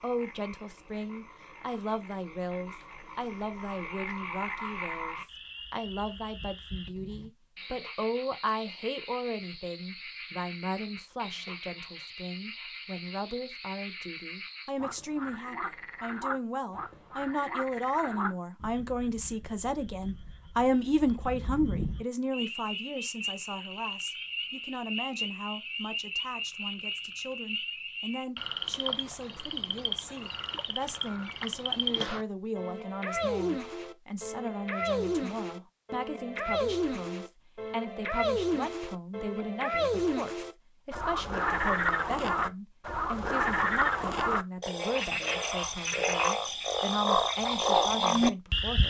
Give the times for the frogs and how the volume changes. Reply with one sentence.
You can hear the frogs from 0.0 to 48.8 s, getting louder.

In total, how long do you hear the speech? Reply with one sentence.
The speech can be heard for 49 seconds in total.